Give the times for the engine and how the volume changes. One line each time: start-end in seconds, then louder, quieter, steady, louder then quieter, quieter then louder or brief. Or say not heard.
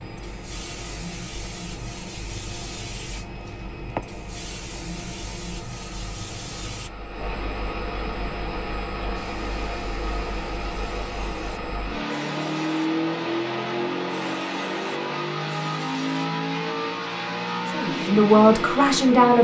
0.0-19.3 louder.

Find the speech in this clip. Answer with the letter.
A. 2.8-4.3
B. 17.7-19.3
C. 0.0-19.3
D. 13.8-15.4
B.